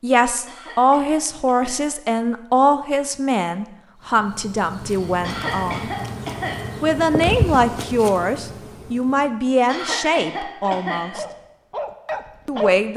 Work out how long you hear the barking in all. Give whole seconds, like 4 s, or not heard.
2 s.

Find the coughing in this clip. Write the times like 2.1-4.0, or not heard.
0.5-1.9, 5.2-6.6, 9.7-11.1.